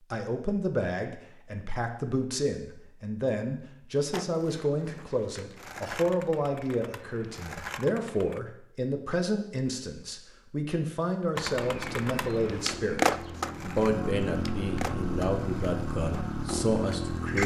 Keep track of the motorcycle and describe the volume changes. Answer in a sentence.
The loudness of the motorcycle goes up.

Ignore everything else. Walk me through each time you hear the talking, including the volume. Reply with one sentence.
You can hear the talking from 0.1 to 17.4 s, at a steady volume.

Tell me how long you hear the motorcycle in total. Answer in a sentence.
You can hear the motorcycle for 6 seconds altogether.